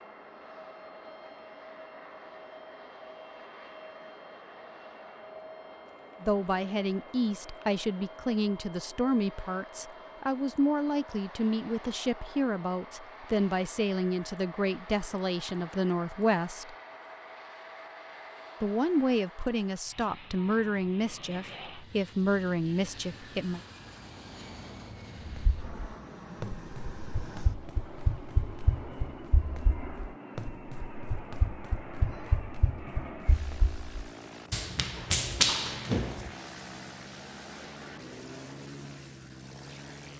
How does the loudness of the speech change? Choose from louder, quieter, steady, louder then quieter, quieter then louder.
steady.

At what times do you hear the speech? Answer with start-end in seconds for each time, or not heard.
6.2-16.8, 18.6-23.6.